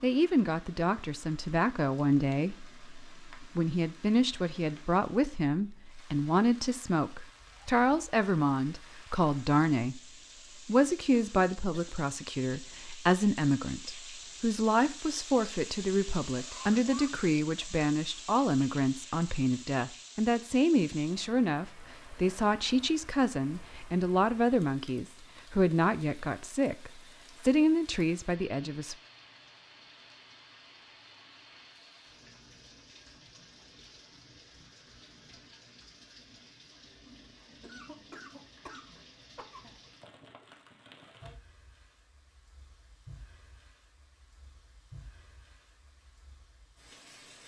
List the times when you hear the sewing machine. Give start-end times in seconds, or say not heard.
not heard.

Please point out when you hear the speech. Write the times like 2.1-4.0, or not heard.
0.0-10.0, 10.7-28.9.